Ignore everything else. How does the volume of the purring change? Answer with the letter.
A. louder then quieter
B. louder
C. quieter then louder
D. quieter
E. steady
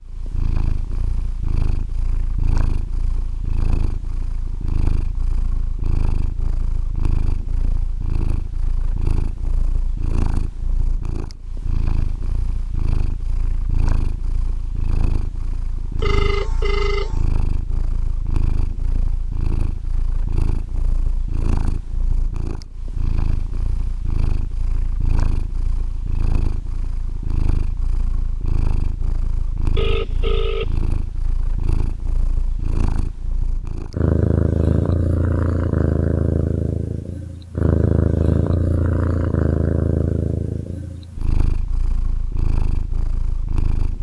B.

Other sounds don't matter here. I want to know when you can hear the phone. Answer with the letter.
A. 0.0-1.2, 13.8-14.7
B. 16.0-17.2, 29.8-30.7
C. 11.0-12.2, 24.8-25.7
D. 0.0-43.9
B.